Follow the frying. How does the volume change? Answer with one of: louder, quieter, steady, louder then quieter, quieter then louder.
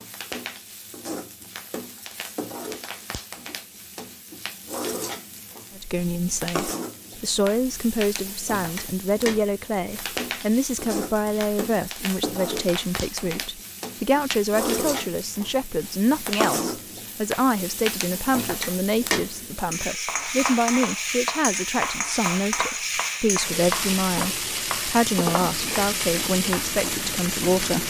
louder.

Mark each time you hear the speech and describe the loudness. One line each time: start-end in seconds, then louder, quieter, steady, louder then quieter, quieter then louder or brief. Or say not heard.
5.8-27.8 steady.